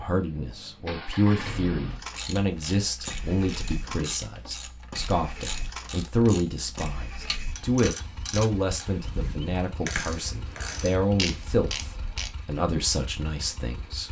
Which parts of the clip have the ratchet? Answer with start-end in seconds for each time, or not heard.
2.0-12.3.